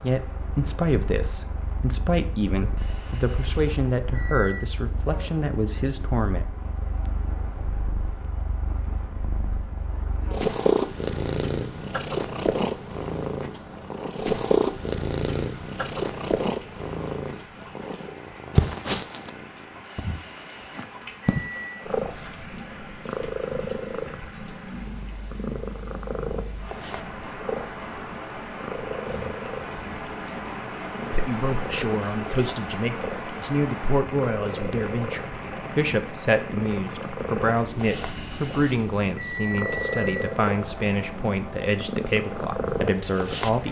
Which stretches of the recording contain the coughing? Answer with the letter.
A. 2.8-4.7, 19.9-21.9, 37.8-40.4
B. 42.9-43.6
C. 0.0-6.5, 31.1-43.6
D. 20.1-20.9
D.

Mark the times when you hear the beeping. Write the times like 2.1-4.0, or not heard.
2.8-4.7, 19.9-21.9, 37.8-40.4.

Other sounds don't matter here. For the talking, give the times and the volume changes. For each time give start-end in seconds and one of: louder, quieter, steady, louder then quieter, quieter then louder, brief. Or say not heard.
0.0-6.5 steady
31.1-43.6 steady.